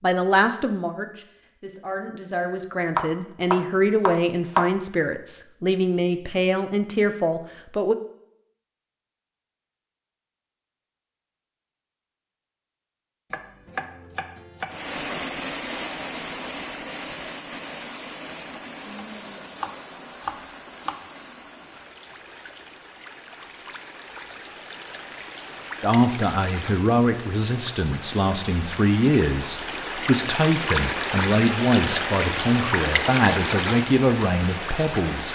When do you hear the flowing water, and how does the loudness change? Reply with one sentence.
The flowing water can be heard from 14.7 to 35.3 s, getting quieter then louder.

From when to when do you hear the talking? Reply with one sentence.
The talking can be heard from 0.0 to 8.0 s and from 25.8 to 35.3 s.